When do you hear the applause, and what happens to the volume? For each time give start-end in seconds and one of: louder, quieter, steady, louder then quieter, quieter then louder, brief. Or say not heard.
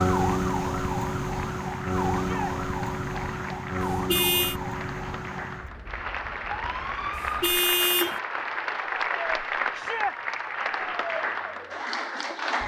0.1-12.6 louder.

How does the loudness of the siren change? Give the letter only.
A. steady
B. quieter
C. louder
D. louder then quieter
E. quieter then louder
B.